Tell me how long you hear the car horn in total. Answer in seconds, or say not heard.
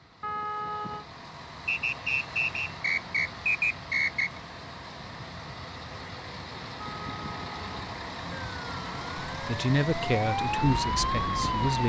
2 s.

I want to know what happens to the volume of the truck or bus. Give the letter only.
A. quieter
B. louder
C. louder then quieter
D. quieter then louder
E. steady
B.